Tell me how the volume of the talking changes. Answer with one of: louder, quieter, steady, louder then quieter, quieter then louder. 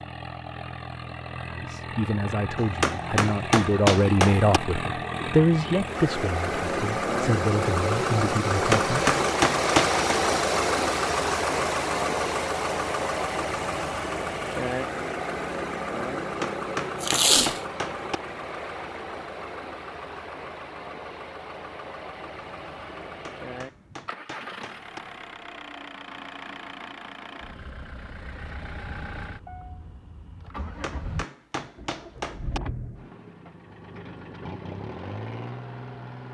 louder then quieter.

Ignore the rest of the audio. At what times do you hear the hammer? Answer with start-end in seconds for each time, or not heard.
2.5-4.6, 8.5-10.1, 16.2-18.2, 23.1-25.0, 30.6-32.6.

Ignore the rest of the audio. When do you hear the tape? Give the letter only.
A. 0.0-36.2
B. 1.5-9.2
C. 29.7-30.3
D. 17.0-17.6
D.